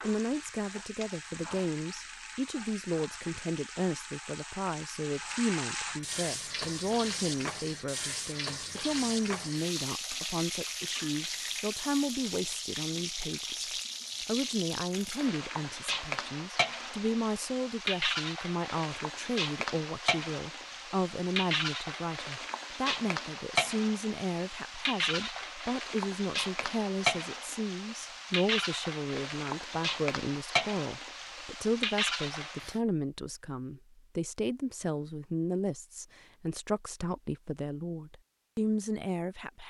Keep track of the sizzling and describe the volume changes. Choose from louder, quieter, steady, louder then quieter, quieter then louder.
louder.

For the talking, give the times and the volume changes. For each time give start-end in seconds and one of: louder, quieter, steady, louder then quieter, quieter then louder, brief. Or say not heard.
0.0-39.6 steady.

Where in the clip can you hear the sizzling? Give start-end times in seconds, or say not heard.
0.0-32.8.